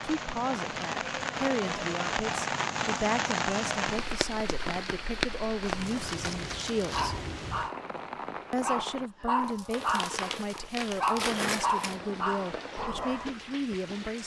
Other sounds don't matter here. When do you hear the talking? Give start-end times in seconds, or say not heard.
0.0-7.2, 8.5-14.2.